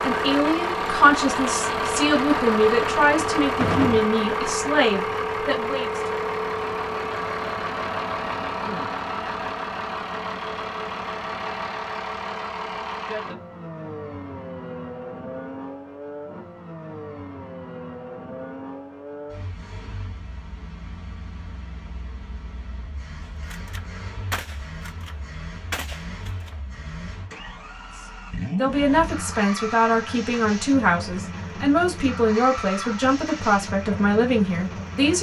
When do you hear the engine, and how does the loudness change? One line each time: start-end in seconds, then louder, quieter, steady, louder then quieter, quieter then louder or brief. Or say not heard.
0.0-35.1 quieter then louder.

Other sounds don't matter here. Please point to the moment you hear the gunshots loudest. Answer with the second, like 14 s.
4 s.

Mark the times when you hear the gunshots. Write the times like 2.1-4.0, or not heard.
3.6-4.1, 23.5-26.6.